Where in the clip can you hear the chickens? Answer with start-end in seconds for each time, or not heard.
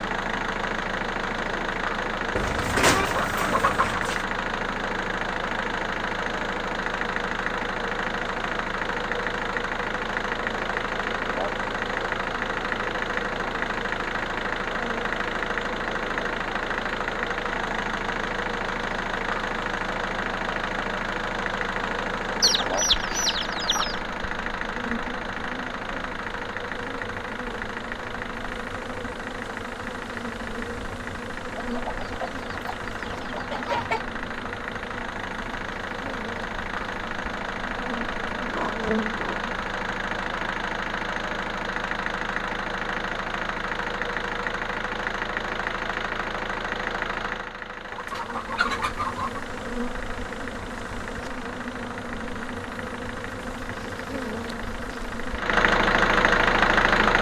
2.4-4.2, 22.4-24.0, 31.6-34.0, 47.9-49.4.